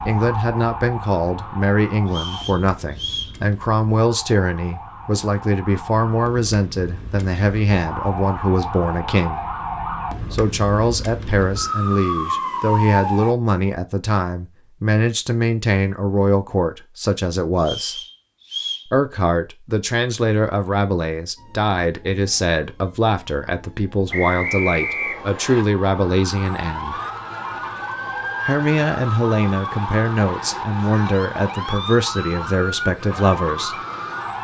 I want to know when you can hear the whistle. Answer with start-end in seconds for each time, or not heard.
2.0-3.4, 17.6-18.9, 24.1-25.6.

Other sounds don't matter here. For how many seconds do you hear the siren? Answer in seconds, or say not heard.
26 s.